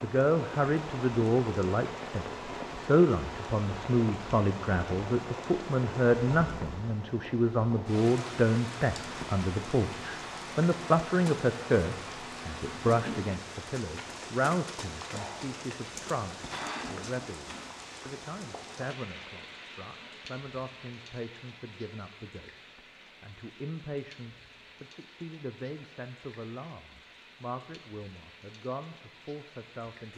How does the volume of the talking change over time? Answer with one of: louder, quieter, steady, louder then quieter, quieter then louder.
quieter.